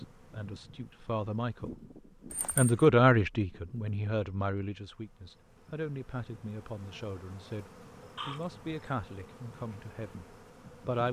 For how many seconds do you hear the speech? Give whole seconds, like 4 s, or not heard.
10 s.